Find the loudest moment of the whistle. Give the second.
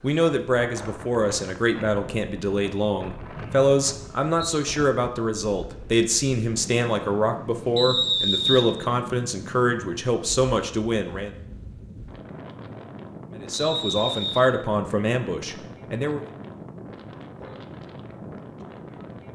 8 s.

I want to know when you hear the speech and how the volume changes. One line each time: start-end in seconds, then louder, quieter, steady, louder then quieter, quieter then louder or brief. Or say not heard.
0.0-11.3 steady
13.3-16.2 brief.